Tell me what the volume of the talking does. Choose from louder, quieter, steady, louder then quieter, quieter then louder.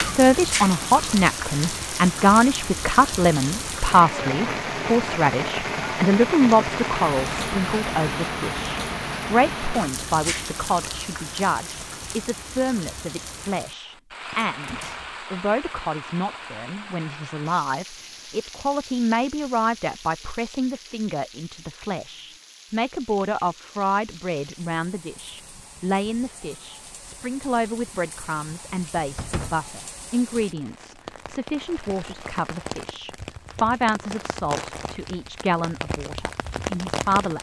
quieter.